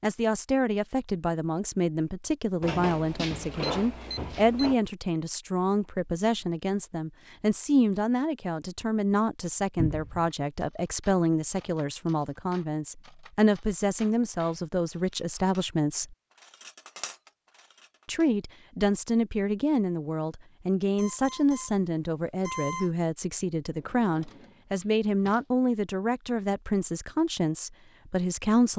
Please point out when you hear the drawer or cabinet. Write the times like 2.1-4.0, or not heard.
2.6-4.8, 9.8-10.3, 23.8-25.4.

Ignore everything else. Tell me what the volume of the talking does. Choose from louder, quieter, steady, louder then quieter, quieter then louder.
steady.